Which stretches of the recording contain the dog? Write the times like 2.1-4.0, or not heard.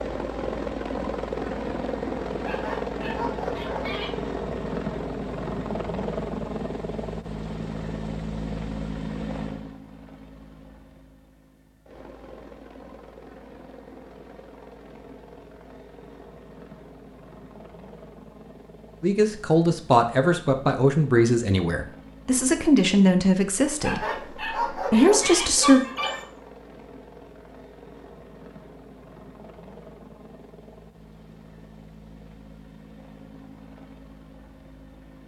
2.5-4.1, 23.8-26.2.